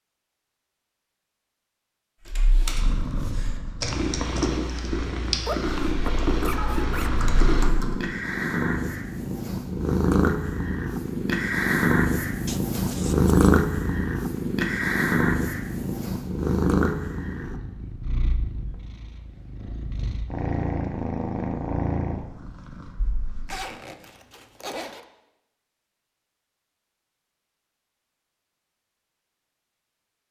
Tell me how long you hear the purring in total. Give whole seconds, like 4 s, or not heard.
21 s.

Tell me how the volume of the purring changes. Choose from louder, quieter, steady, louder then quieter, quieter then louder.
louder then quieter.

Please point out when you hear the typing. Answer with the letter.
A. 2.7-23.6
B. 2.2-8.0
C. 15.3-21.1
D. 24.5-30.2
B.